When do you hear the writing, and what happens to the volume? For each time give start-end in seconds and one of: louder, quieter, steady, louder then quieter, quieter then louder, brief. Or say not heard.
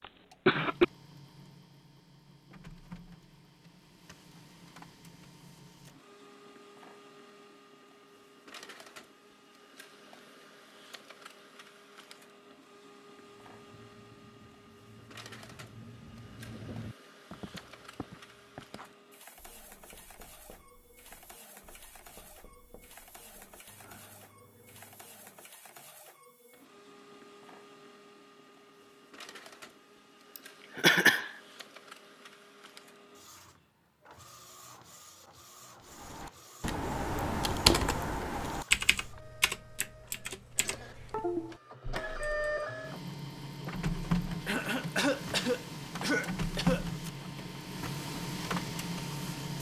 13.2-25.4 louder then quieter.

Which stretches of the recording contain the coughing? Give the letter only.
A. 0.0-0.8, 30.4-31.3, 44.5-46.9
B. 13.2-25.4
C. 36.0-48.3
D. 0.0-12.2
A.